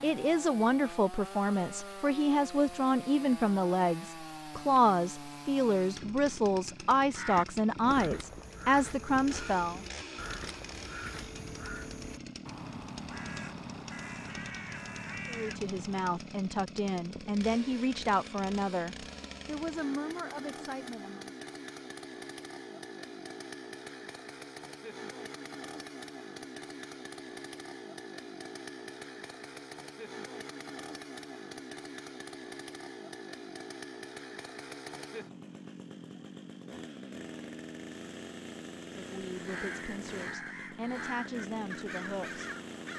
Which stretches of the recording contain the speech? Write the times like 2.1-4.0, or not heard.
0.0-9.8, 15.2-21.4, 38.9-42.9.